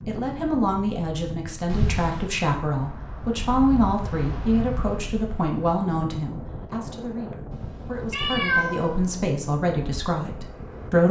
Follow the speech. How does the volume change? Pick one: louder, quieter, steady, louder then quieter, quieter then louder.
quieter then louder.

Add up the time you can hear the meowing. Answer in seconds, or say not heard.
2 s.